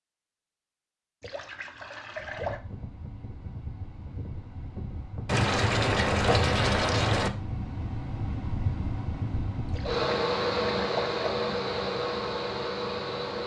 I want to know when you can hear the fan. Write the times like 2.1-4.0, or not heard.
2.1-13.4.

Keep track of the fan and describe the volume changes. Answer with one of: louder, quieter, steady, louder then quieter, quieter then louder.
louder.